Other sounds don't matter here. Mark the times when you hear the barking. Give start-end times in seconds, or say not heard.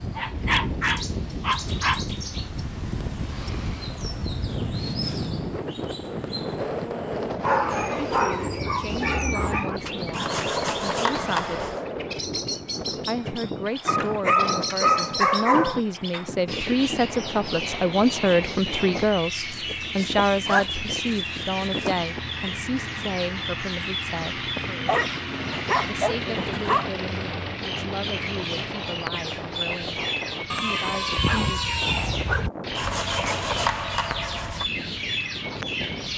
0.1-2.0, 7.4-9.8, 13.8-15.8, 19.5-21.9, 24.6-26.9, 30.5-32.5.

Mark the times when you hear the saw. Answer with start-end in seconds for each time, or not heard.
10.1-11.8, 32.8-34.6.